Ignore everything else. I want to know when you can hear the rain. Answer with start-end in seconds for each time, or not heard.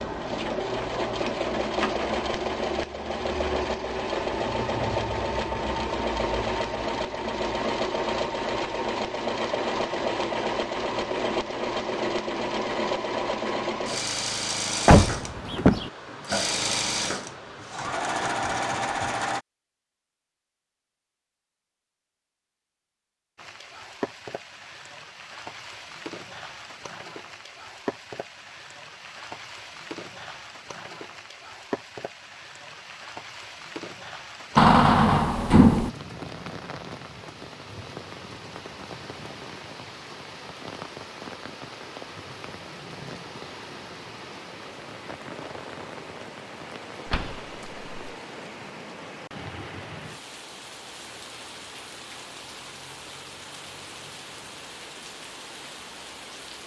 23.4-56.6.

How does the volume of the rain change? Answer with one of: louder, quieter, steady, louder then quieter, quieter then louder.
steady.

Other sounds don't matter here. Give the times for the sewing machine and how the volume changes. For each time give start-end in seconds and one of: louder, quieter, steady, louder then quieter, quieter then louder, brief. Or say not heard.
0.0-19.4 steady.